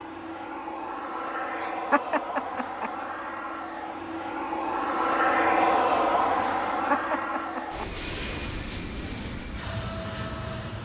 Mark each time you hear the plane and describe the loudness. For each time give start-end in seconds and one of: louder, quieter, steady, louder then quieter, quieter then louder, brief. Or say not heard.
0.0-10.7 louder then quieter.